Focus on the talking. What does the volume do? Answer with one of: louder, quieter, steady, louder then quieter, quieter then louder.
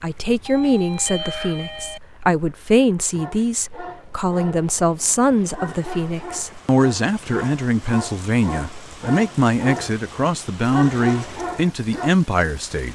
steady.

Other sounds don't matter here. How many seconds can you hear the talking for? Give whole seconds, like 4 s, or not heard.
13 s.